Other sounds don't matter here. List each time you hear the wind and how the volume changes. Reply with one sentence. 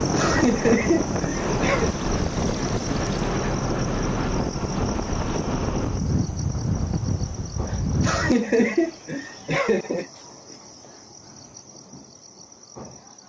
You can hear the wind from 0.0 to 8.3 s, at a steady volume.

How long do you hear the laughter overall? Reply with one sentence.
You can hear the laughter for 4 seconds altogether.